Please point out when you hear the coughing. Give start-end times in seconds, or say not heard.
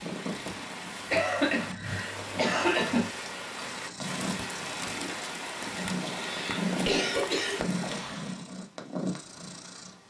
1.1-3.0, 6.0-7.6.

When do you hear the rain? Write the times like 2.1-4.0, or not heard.
0.0-8.4.